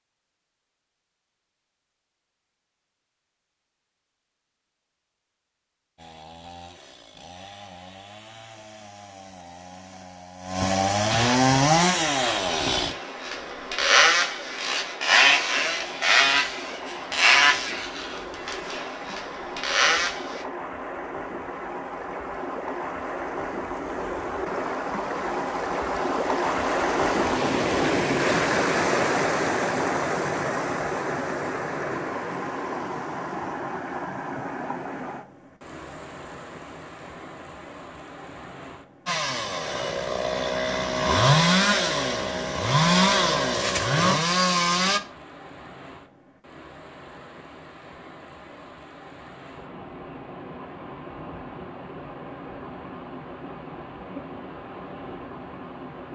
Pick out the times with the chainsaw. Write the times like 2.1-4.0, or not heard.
6.0-20.4, 39.0-45.0.